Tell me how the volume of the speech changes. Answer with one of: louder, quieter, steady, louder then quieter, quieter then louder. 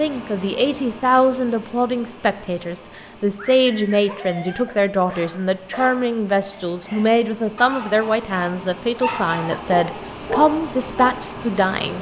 steady.